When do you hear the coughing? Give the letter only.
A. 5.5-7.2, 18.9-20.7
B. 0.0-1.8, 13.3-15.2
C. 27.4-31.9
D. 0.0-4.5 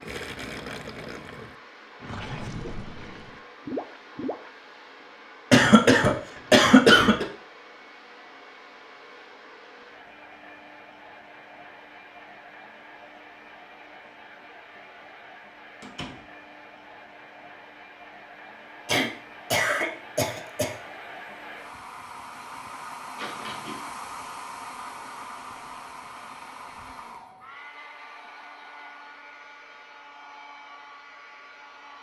A.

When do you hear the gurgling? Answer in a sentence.
The gurgling can be heard from 0.0 to 4.5 s.